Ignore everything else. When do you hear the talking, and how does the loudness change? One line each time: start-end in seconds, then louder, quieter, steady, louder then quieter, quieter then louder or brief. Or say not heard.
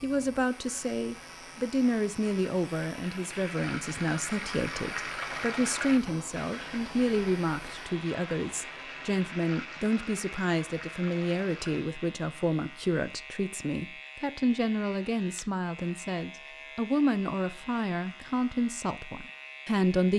0.0-20.1 steady.